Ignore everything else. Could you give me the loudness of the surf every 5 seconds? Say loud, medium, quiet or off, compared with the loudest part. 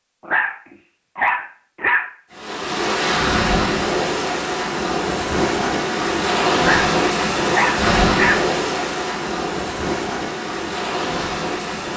loud, loud, medium.